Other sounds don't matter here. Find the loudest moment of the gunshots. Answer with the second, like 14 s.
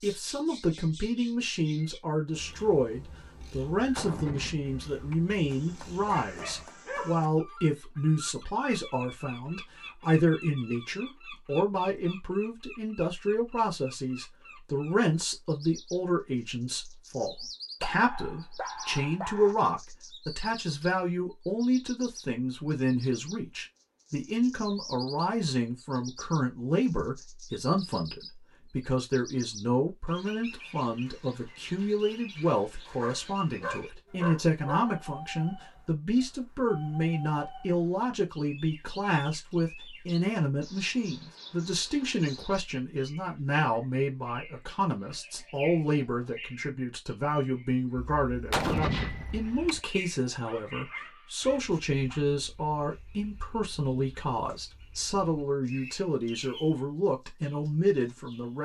49 s.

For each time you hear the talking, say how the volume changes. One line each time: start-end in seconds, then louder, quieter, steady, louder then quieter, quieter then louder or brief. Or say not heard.
0.0-58.6 steady.